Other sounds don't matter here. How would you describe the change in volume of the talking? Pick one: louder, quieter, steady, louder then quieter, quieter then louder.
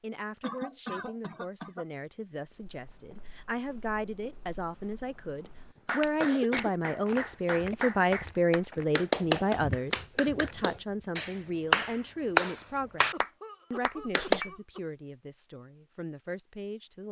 louder then quieter.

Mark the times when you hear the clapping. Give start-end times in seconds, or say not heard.
5.8-14.4.